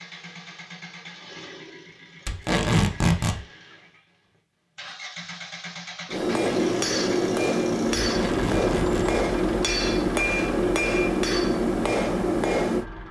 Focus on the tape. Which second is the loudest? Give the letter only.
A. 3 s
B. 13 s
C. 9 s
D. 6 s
A.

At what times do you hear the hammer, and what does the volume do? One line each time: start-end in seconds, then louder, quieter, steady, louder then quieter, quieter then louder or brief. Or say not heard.
6.0-12.8 steady.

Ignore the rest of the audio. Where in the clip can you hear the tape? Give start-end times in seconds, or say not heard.
2.2-3.4, 8.0-9.0.